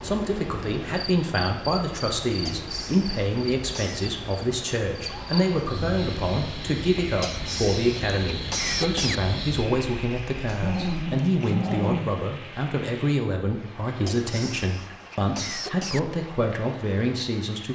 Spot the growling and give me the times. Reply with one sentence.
You can hear the growling from 10.4 to 12.2 s.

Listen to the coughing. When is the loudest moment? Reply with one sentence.
The loudest moment of the coughing is at 9 seconds.